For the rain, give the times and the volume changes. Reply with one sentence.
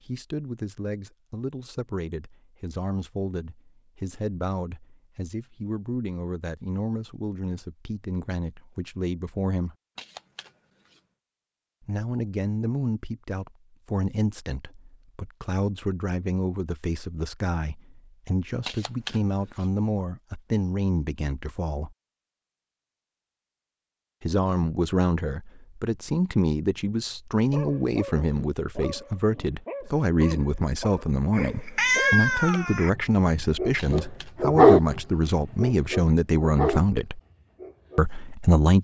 You can't hear the rain here.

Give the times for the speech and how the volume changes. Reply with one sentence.
You can hear the speech from 0.0 to 9.8 s, at a steady volume; from 11.8 to 21.9 s, at a steady volume; from 24.2 to 37.2 s, at a steady volume; and briefly from 38.0 to 38.7 s.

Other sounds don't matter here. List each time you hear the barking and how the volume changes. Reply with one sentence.
You can hear the barking from 27.5 to 38.0 s, getting louder then quieter.